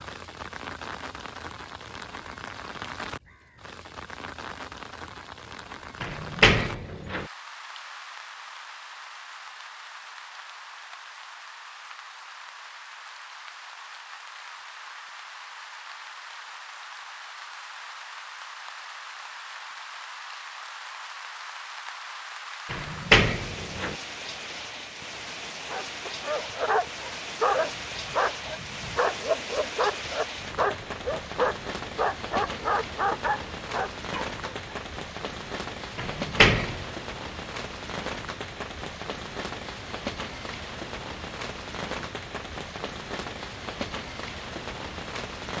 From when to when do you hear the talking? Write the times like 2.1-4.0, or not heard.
not heard.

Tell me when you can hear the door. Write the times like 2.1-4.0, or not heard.
6.0-7.2, 22.7-23.9, 36.0-36.9.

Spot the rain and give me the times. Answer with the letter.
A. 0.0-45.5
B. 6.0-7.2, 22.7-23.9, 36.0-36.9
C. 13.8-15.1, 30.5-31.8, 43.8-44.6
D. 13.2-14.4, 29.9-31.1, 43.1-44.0
A.